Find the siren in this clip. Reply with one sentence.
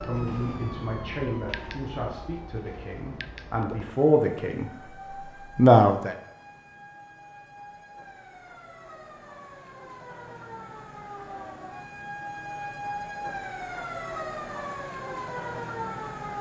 The siren can be heard from 0.0 to 16.3 s.